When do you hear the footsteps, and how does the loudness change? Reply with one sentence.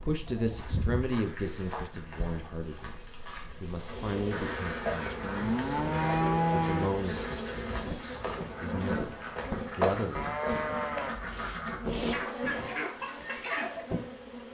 The footsteps can be heard from 0.5 to 11.1 s, getting louder.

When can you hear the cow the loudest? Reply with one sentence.
The loudest moment of the cow is at 6 seconds.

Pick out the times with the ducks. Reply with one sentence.
The ducks can be heard from 4.3 to 13.8 s.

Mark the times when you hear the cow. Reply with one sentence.
You can hear the cow from 0.3 to 1.9 s, from 5.2 to 6.9 s and from 10.2 to 12.2 s.